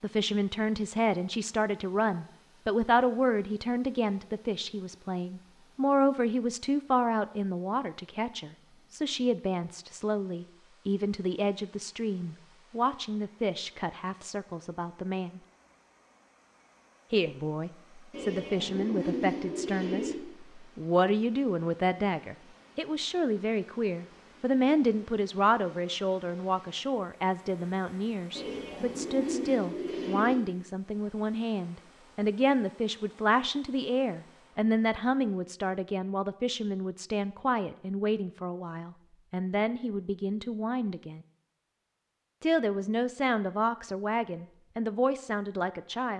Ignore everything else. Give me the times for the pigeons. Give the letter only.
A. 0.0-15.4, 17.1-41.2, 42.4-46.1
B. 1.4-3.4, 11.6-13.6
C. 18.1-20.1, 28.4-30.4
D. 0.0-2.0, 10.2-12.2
C.